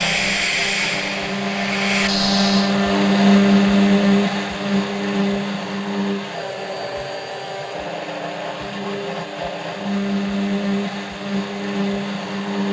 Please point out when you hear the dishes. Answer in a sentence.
The dishes can't be heard in this clip.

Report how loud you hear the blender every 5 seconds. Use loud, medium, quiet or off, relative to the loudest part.
loud, medium, medium.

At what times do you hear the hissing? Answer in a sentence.
You can hear the hissing from 0.0 to 2.8 s.